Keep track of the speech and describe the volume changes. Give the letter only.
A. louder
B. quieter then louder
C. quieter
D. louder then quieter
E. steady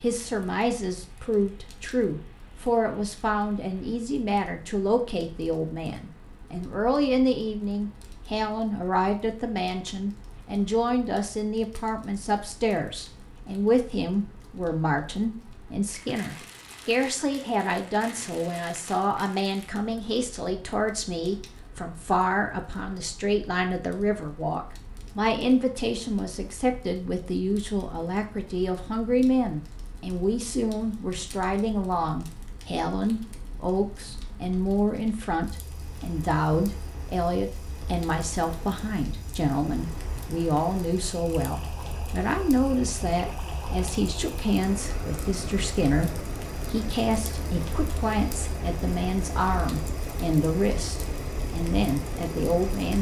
E.